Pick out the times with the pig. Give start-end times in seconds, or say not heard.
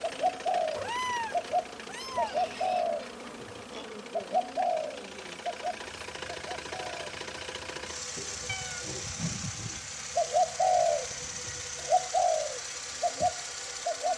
2.1-4.0, 8.2-9.9.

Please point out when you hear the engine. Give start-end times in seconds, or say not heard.
0.0-14.1.